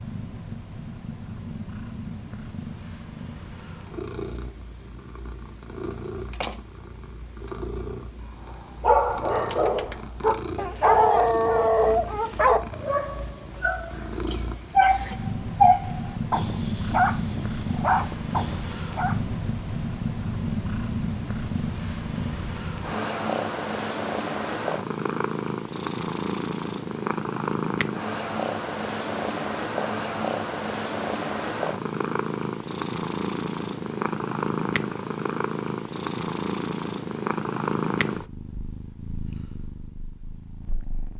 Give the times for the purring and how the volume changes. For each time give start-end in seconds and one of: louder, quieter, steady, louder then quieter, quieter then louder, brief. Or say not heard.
0.0-41.1 louder.